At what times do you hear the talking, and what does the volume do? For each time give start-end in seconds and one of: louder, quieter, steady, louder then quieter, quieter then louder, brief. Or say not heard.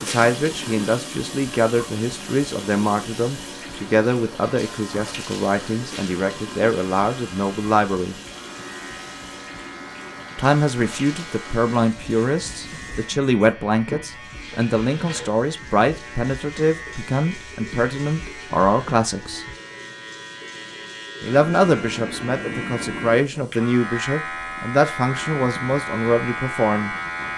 0.0-8.2 steady
10.3-19.4 steady
21.2-26.9 steady.